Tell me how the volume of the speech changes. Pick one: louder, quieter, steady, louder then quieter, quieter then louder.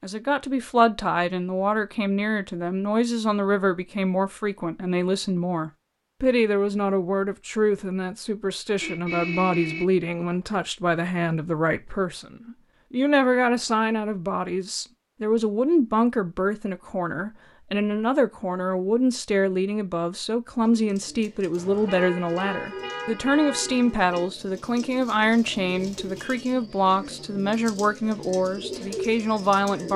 steady.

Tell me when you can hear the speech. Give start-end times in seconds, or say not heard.
0.0-29.9.